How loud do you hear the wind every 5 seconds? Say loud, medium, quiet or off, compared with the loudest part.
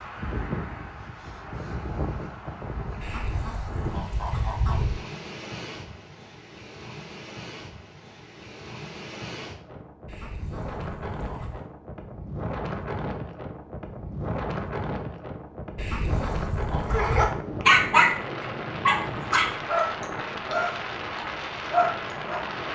loud, medium, loud, loud, loud.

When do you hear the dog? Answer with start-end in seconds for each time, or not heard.
16.9-22.5.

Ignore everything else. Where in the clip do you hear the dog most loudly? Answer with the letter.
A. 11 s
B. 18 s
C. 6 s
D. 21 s
B.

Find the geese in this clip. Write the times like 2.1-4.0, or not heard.
3.0-5.0, 10.1-11.7, 15.8-17.4.